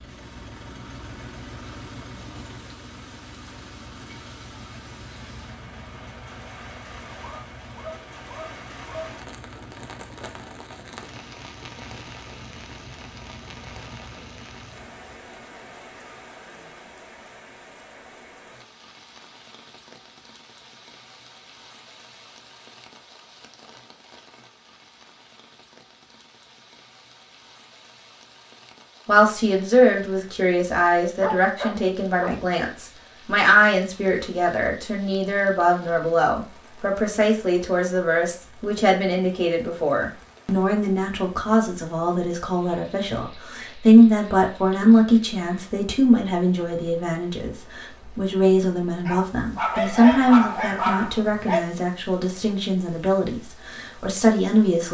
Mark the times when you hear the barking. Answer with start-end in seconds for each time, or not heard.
7.2-9.2, 31.2-32.4, 49.0-51.6.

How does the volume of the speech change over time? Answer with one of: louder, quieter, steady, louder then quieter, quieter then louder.
steady.